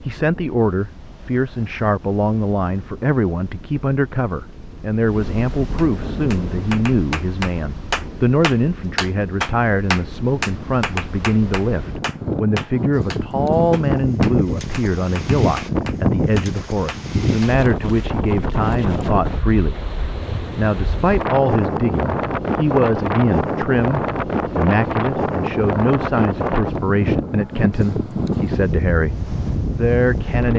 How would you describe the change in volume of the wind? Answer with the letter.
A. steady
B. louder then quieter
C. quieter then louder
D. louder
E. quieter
D.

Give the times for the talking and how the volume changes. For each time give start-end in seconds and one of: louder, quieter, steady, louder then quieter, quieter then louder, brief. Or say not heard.
0.1-30.5 steady.